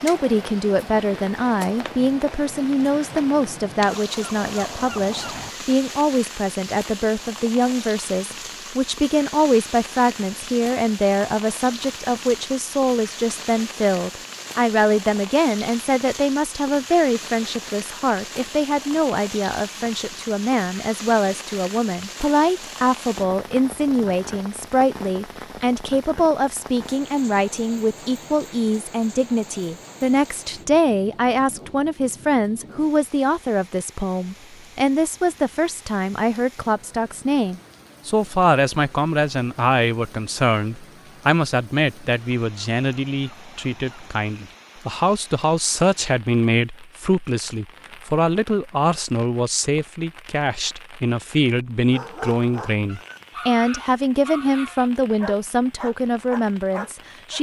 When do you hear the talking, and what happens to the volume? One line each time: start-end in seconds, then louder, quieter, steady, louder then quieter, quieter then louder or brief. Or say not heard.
0.0-57.3 steady.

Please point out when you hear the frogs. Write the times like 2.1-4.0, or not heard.
not heard.